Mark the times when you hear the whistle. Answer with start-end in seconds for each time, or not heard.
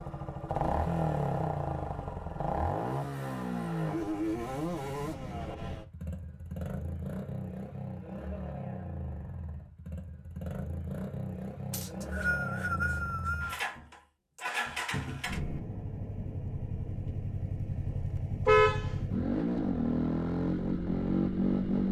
11.7-13.6.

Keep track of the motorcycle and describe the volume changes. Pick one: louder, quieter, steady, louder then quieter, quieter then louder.
quieter then louder.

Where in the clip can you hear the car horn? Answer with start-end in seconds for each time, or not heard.
18.4-19.1.